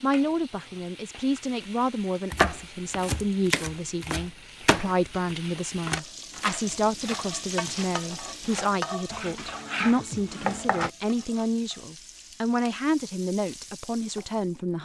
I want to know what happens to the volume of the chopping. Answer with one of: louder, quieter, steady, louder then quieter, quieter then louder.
quieter then louder.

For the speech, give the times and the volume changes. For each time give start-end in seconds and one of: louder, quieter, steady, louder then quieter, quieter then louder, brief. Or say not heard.
0.0-14.8 steady.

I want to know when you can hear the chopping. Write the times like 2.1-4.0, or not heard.
2.3-10.9.